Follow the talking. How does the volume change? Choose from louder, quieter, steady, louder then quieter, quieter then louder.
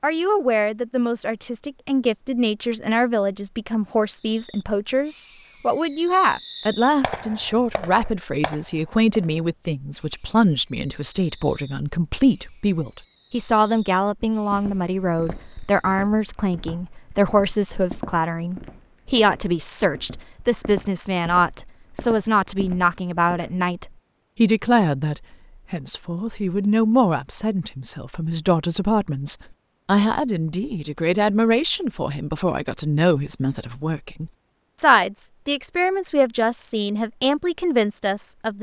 steady.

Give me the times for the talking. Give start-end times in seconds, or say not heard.
0.0-38.5.